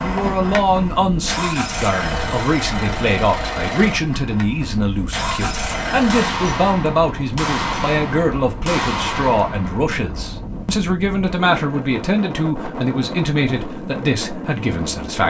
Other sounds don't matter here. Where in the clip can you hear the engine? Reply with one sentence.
The engine can be heard from 0.0 to 6.2 s.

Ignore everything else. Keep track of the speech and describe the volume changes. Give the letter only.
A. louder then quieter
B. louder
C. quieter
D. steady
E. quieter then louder
D.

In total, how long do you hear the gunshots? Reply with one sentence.
The gunshots can be heard for 4 seconds in total.